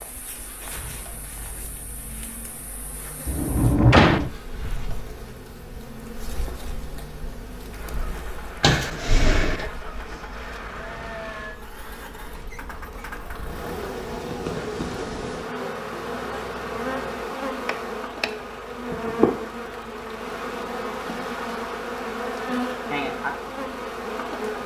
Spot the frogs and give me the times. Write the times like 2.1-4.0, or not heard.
not heard.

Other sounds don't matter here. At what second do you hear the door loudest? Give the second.
4 s.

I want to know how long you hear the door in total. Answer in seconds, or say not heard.
3 s.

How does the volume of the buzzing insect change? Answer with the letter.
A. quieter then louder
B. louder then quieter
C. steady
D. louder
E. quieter
D.